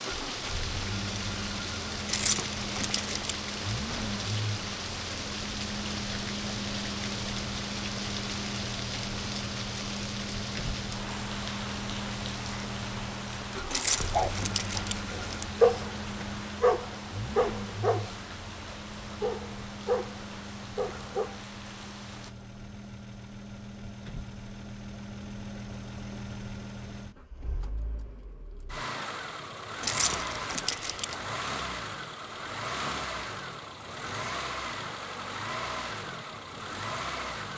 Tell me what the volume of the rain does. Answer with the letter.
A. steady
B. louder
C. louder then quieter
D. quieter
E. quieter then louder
D.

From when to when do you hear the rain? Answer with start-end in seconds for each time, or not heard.
0.0-22.4.